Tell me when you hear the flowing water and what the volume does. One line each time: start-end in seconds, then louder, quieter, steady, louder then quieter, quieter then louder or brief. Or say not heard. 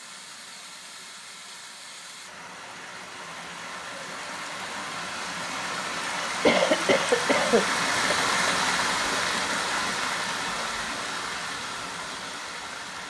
0.0-13.0 louder then quieter.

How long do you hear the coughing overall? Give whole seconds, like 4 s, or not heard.
2 s.